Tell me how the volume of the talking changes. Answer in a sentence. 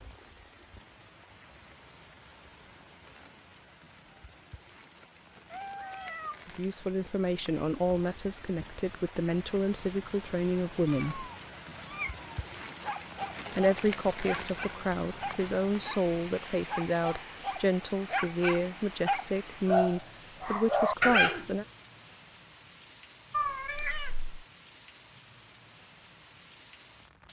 The loudness of the talking stays about the same.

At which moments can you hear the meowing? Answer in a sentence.
The meowing can be heard from 5.5 to 6.4 s, from 10.8 to 12.3 s and from 23.3 to 24.4 s.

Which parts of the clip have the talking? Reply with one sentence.
The talking can be heard from 6.5 to 11.3 s and from 13.6 to 21.6 s.